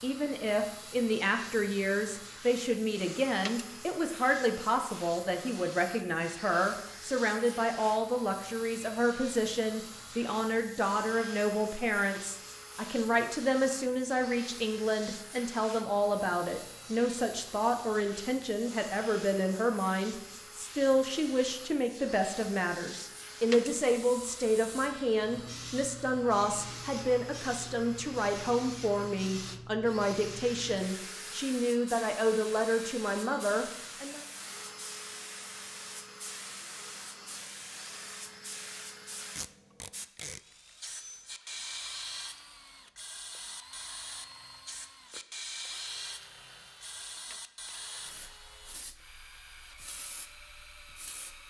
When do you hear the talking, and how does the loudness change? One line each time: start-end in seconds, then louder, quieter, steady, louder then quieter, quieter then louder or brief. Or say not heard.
0.0-34.2 steady.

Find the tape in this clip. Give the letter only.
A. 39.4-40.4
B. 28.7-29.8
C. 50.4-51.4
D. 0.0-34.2
A.